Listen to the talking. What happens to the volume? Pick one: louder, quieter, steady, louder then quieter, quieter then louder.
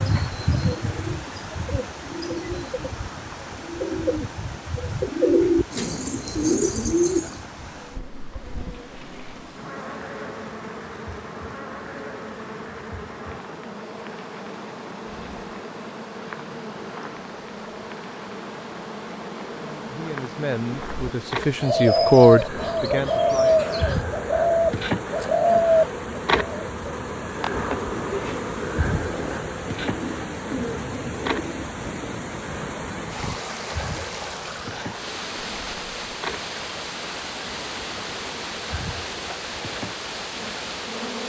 louder then quieter.